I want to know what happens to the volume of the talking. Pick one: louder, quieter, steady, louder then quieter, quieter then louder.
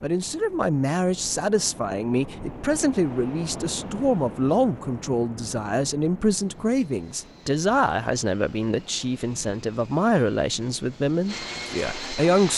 steady.